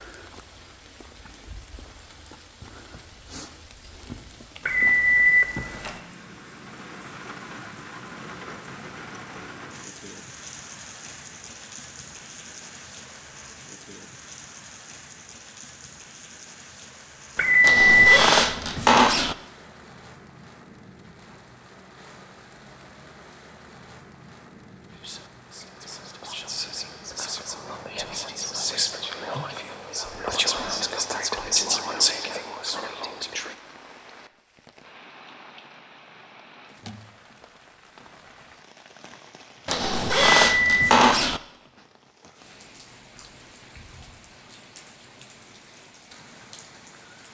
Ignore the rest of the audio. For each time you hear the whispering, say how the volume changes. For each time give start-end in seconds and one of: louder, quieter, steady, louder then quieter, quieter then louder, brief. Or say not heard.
24.9-33.5 louder.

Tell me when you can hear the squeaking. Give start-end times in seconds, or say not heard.
17.6-19.4, 39.6-41.4.